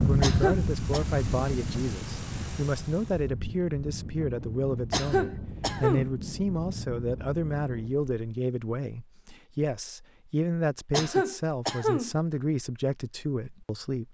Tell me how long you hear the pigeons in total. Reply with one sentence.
You can't hear the pigeons here.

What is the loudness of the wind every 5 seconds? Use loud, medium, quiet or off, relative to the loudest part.
loud, medium, off.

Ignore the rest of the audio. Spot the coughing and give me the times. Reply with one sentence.
You can hear the coughing from 0.2 to 1.1 s, from 4.9 to 6.1 s and from 10.9 to 12.1 s.